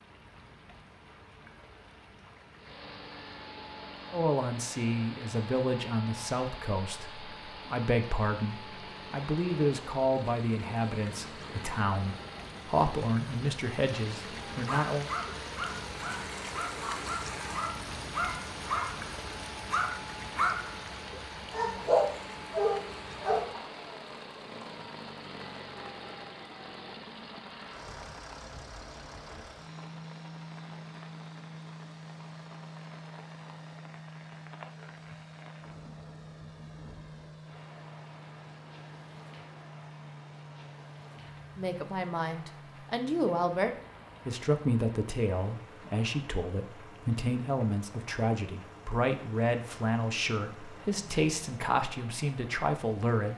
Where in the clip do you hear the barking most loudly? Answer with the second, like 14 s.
22 s.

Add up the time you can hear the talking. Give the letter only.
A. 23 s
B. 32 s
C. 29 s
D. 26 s
A.